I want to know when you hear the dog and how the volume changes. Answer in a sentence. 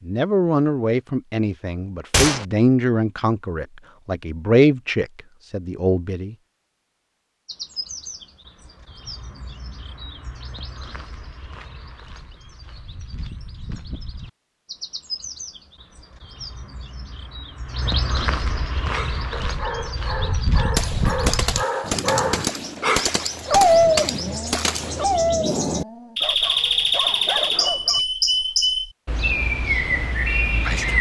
The dog can be heard from 18.9 to 28.1 s, getting louder then quieter.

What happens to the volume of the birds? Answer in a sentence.
The volume of the birds goes up.